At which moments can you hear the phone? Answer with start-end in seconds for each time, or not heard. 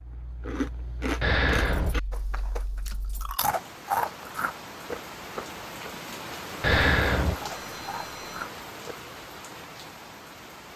1.2-1.9, 6.6-8.4.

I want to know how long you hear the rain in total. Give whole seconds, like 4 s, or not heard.
7 s.